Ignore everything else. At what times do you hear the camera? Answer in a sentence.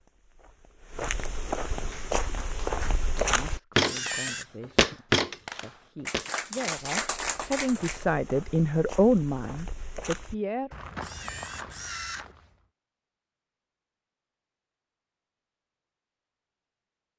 You can hear the camera from 3.8 to 4.5 s and from 11.0 to 12.2 s.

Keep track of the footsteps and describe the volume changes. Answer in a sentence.
The volume of the footsteps goes up, then down.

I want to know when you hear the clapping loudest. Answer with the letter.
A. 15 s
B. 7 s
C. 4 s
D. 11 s
B.